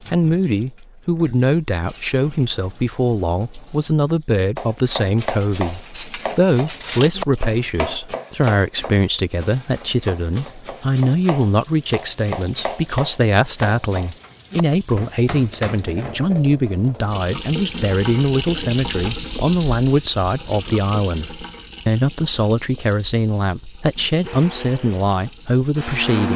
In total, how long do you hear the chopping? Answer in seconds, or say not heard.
12 s.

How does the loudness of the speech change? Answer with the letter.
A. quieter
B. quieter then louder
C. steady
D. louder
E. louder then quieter
C.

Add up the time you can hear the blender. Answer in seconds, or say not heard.
2 s.